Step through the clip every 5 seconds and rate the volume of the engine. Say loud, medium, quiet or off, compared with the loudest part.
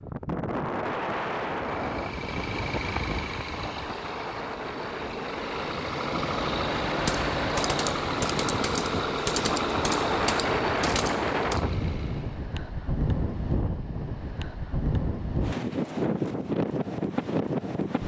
medium, loud, loud, off.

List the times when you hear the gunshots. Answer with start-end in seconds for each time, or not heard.
7.0-11.6.